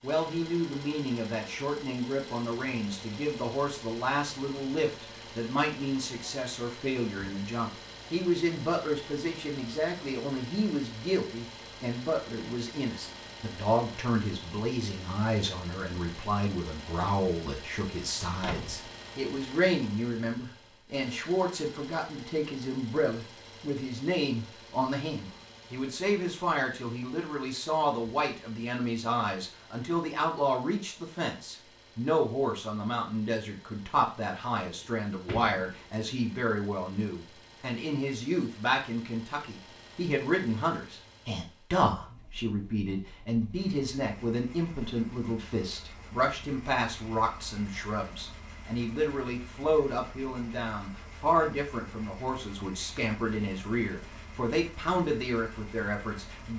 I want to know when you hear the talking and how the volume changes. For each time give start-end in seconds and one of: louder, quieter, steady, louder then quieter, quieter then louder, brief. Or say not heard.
0.0-56.5 steady.